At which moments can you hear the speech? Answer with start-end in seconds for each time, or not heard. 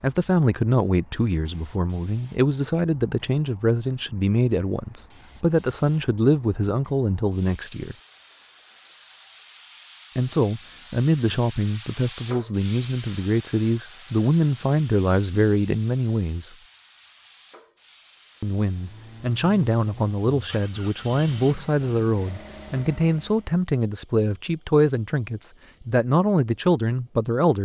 0.0-8.0, 10.2-16.6, 18.4-27.6.